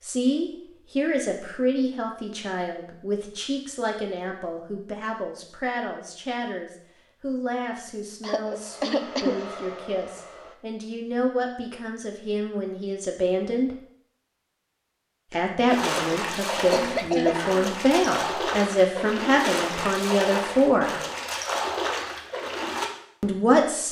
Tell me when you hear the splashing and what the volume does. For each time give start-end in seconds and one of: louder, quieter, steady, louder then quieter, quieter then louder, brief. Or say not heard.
15.7-22.9 steady.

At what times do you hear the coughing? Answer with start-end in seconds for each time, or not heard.
8.2-9.4, 16.6-18.2.